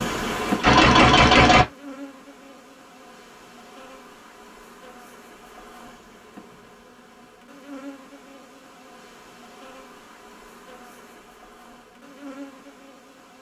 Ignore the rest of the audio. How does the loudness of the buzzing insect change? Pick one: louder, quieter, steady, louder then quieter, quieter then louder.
quieter.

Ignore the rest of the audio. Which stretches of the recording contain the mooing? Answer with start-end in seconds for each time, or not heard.
not heard.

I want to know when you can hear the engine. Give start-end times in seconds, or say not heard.
0.0-1.6.